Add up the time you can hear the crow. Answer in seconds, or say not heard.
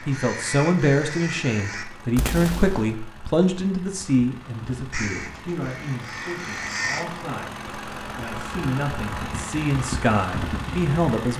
4 s.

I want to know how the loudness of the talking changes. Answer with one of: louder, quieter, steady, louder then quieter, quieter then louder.
quieter then louder.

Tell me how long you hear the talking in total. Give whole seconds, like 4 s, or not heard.
11 s.